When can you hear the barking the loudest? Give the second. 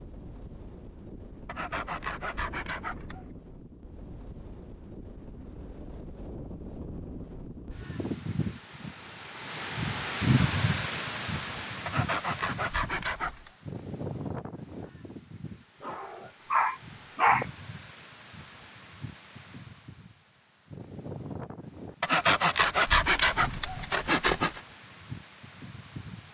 17 s.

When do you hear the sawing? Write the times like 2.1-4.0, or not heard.
1.4-3.2, 11.8-13.5, 22.0-24.6.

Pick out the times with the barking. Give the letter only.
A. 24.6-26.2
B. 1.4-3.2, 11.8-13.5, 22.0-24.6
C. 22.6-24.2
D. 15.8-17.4
D.